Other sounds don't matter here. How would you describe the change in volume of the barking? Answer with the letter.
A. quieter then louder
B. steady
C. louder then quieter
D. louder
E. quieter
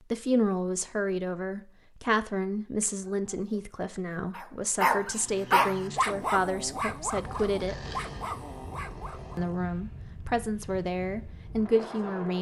C.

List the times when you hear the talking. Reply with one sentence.
The talking can be heard from 0.1 to 7.8 s and from 9.3 to 12.3 s.